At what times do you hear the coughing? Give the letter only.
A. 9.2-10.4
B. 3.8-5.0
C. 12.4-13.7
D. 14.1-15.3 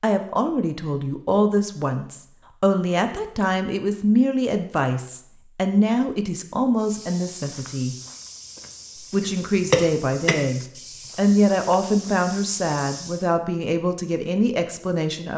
A.